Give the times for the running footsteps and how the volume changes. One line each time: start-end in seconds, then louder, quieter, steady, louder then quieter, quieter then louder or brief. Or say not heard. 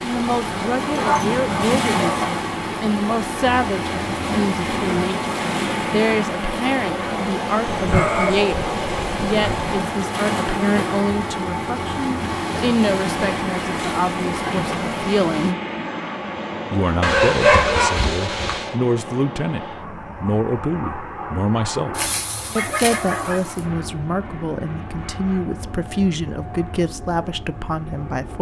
not heard.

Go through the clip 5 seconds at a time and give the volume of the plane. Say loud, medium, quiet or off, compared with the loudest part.
loud, loud, loud, loud, medium, medium.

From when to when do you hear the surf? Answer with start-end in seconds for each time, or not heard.
0.0-15.6.